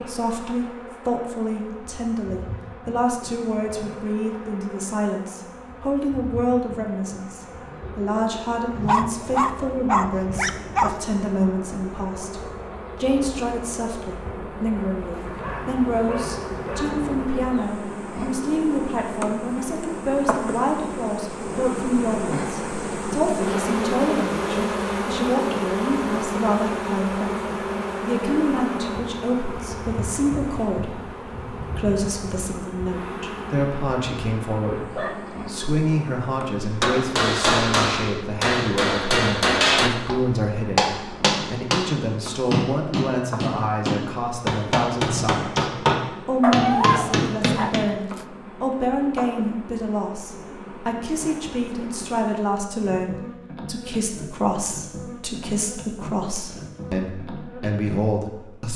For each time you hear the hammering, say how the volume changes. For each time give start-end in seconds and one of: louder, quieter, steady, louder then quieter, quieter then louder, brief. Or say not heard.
36.6-47.9 steady.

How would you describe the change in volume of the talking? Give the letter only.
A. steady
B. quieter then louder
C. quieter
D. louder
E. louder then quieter
A.